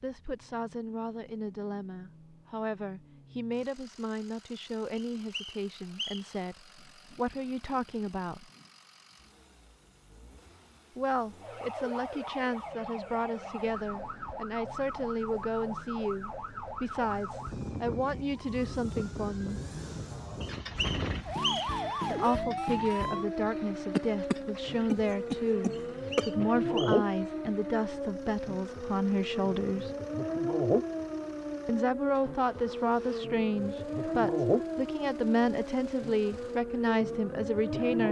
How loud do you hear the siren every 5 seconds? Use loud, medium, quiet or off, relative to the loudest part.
off, off, medium, medium, loud, loud, loud, loud.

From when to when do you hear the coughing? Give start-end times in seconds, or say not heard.
23.9-26.3.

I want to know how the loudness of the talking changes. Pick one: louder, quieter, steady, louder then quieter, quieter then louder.
louder.